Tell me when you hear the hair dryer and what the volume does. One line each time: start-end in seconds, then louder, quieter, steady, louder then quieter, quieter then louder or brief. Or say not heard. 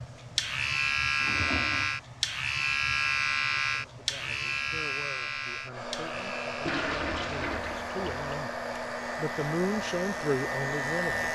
0.0-11.3 louder.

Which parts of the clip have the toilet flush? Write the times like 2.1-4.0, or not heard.
0.1-1.9, 6.7-8.3.